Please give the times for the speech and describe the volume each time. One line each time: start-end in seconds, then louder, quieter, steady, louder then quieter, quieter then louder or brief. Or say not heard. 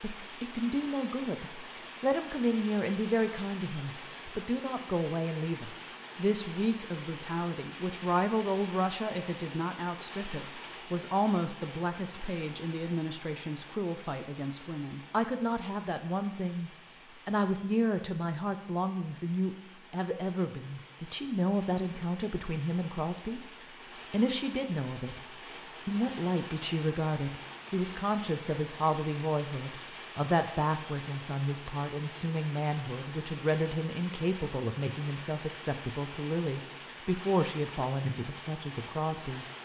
0.0-23.4 steady
24.1-25.2 brief
25.9-39.5 steady.